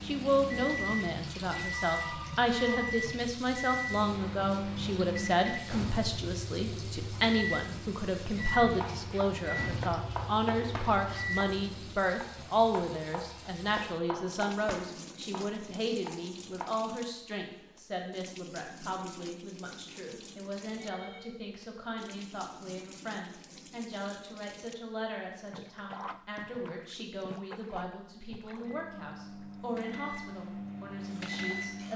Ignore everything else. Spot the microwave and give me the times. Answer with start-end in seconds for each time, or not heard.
0.0-11.9, 28.6-31.9.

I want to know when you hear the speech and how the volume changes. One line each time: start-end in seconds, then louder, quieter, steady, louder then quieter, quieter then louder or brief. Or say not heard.
0.0-31.9 quieter.